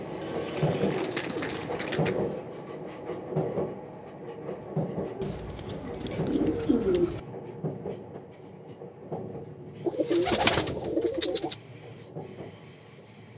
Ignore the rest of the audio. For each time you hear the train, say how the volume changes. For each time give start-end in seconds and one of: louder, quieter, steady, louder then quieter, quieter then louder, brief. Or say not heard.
0.0-13.3 quieter.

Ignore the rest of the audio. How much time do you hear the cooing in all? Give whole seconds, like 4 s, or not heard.
6 s.